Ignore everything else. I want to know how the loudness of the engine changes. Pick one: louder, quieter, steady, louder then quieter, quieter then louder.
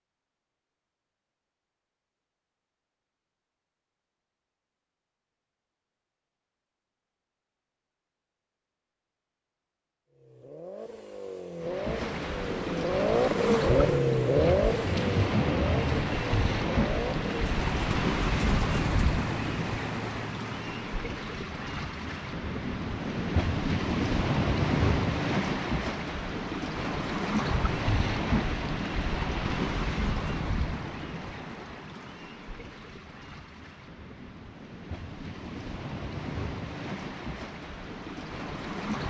louder then quieter.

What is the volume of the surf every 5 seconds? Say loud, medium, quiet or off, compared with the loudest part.
off, off, loud, loud, loud, loud, medium, medium.